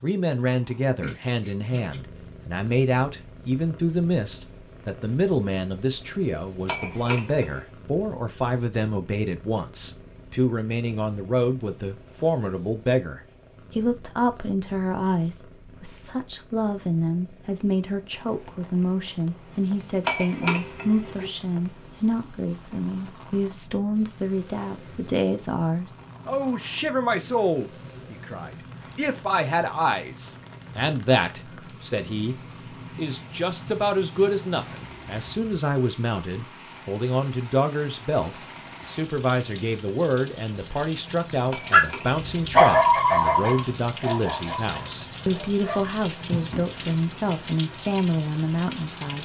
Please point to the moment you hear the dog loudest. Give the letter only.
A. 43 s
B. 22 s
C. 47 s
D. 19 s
A.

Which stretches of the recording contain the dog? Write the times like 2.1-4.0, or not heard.
41.7-46.7.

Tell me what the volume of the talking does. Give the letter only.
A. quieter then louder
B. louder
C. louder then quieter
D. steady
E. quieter
D.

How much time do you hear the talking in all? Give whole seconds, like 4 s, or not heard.
49 s.